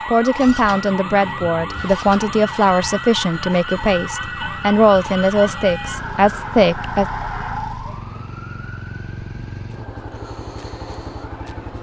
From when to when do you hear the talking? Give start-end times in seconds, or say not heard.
0.1-7.0.